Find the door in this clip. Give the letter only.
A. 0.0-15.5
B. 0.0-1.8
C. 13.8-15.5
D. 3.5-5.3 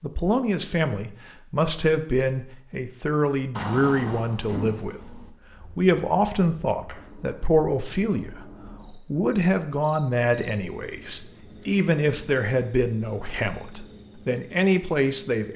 D.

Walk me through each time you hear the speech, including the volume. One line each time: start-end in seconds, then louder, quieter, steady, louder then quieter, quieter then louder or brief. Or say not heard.
0.0-15.5 steady.